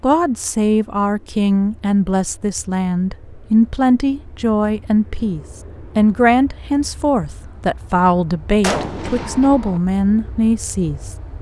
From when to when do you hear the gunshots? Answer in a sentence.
You can hear the gunshots from 8.6 to 9.8 s.